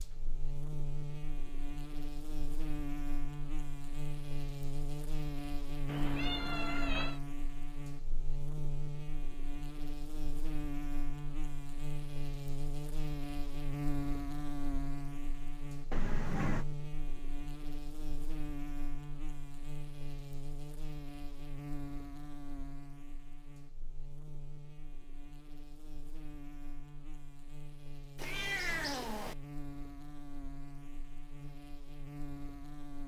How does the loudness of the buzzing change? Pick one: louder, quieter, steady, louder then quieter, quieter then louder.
quieter.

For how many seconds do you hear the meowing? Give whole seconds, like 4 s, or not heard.
3 s.